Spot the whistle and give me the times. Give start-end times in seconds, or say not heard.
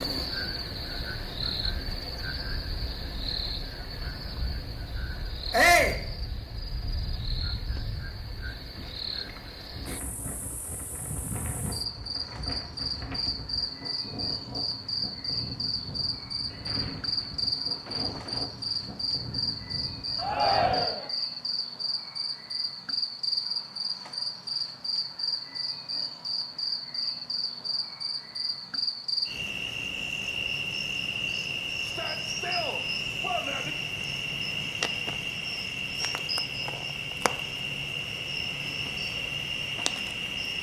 not heard.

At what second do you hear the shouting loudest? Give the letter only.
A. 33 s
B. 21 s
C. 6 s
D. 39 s
C.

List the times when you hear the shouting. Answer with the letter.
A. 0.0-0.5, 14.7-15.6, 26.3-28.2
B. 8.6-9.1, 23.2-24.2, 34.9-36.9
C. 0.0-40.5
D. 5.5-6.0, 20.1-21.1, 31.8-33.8
D.